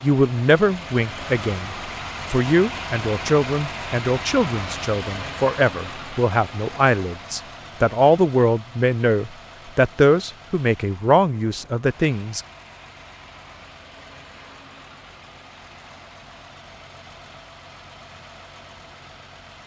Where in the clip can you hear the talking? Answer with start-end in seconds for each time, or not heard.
0.0-1.7, 2.3-12.4.